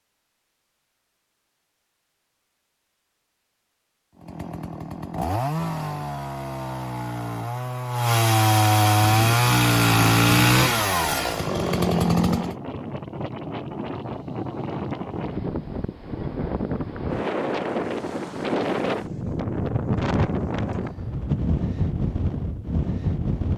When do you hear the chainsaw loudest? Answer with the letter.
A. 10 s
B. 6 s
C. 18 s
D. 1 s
A.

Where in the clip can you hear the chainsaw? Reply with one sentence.
You can hear the chainsaw from 4.2 to 12.6 s.